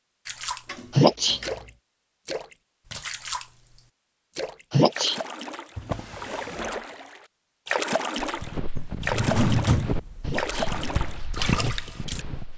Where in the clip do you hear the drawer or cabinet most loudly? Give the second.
10 s.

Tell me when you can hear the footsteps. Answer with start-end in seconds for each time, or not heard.
8.2-12.5.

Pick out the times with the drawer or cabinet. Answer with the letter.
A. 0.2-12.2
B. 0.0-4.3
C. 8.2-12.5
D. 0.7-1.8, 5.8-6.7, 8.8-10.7
D.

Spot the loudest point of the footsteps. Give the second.
12 s.